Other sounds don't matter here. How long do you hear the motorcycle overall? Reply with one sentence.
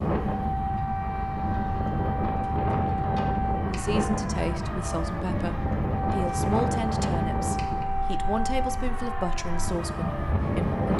The motorcycle can't be heard in this clip.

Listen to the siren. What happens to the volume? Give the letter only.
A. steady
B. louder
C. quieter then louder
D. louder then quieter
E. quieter
A.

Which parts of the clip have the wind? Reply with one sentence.
The wind can be heard from 0.0 to 10.9 s.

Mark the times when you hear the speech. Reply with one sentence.
The speech can be heard from 3.6 to 10.9 s.